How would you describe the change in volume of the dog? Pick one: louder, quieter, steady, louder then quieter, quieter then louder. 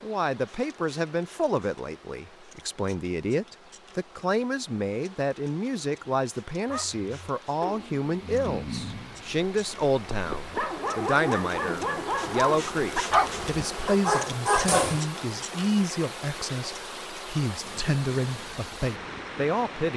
louder.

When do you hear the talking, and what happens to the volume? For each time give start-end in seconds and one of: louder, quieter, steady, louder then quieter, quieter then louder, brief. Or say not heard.
0.0-19.9 steady.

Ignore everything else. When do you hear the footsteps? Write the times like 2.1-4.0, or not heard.
not heard.